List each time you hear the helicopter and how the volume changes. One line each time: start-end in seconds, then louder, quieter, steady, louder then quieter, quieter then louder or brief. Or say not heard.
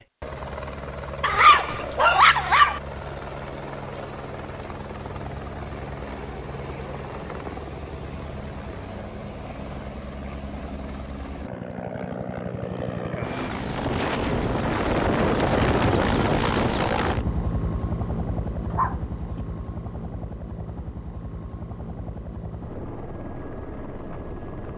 0.0-24.7 louder then quieter.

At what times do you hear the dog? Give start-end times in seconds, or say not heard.
1.2-2.8, 18.7-19.4.